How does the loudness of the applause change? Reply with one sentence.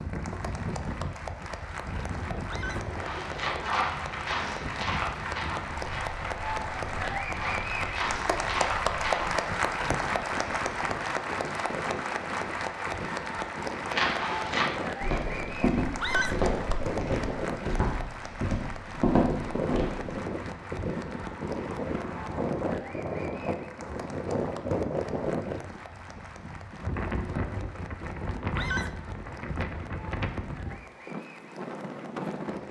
The volume of the applause goes up, then down.